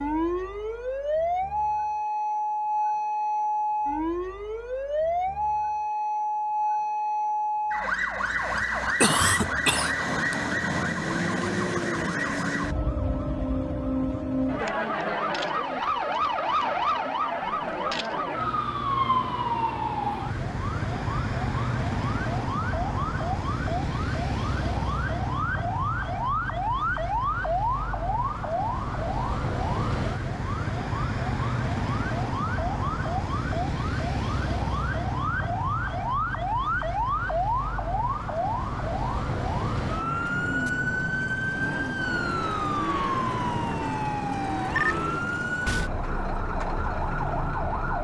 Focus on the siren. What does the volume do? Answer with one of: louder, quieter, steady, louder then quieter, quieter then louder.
steady.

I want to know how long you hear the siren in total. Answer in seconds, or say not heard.
48 s.